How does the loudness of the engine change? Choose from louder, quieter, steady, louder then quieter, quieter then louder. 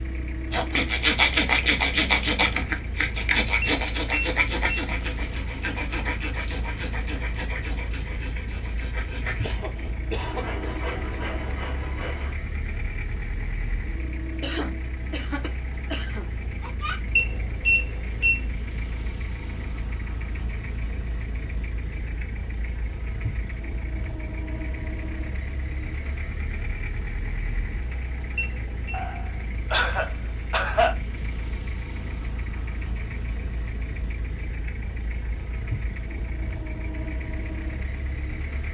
steady.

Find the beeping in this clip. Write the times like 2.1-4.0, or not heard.
3.6-4.8, 17.1-18.4, 28.4-29.0.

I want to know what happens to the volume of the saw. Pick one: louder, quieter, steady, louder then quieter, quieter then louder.
quieter.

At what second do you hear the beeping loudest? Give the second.
18 s.